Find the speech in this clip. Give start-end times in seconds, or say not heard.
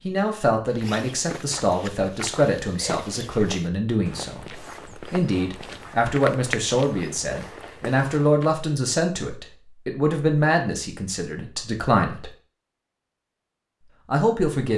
0.0-12.3, 14.1-14.7.